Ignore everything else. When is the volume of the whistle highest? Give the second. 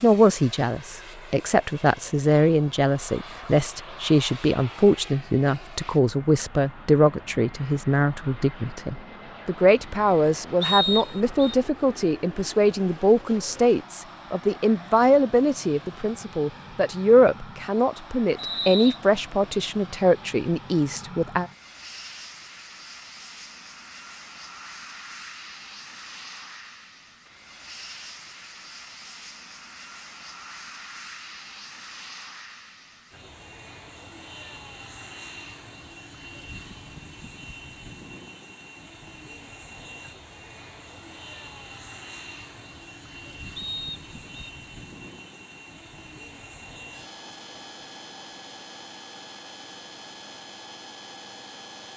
11 s.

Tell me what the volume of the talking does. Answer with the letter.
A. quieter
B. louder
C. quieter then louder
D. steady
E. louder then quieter
D.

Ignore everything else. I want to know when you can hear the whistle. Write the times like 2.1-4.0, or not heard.
10.6-11.6, 18.4-19.0, 43.5-44.5.